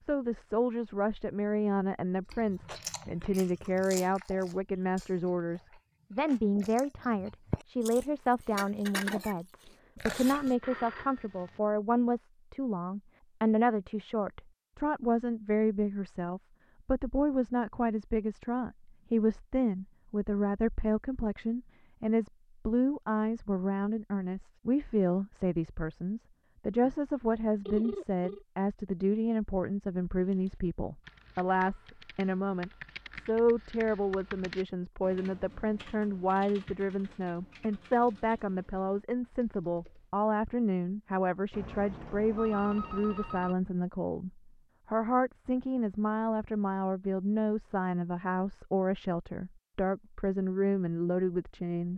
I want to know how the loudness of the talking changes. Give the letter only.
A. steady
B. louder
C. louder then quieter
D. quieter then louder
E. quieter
A.